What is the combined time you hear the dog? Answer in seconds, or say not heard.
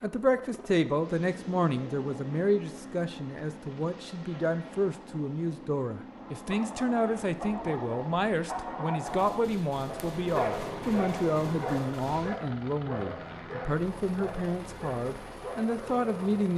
10 s.